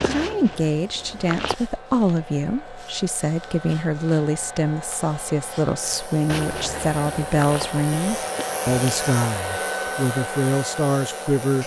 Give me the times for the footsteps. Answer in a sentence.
The footsteps can be heard from 0.0 to 1.6 s and from 6.2 to 9.1 s.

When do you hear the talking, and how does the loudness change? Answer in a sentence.
The talking can be heard from 0.0 to 11.6 s, at a steady volume.